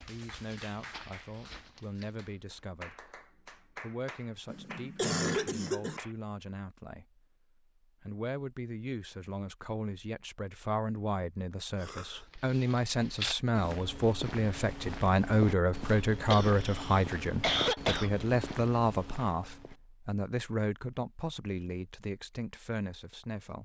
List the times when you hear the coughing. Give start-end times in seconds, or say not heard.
4.5-6.0, 11.8-12.2, 16.3-18.1.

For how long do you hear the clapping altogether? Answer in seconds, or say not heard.
6 s.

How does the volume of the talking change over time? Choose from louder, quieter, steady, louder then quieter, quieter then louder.
louder then quieter.